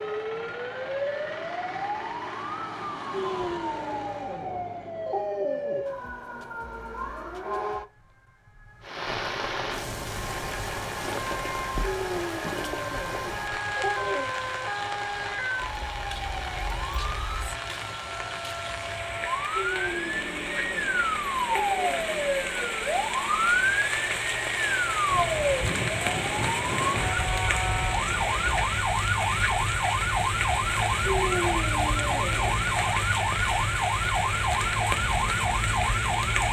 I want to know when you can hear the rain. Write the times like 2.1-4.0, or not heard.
8.8-36.4.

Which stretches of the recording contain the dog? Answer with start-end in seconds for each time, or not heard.
3.1-6.0, 11.8-14.3, 19.5-22.1, 31.0-32.6.